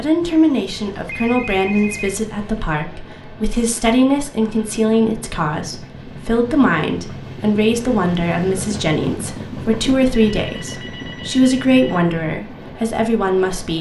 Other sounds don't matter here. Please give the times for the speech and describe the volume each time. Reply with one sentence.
You can hear the speech from 0.0 to 13.7 s, at a steady volume.